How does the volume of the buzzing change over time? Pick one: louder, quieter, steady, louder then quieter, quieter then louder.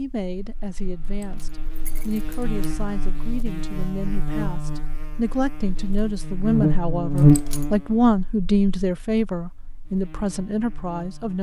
louder then quieter.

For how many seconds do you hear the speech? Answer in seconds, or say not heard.
11 s.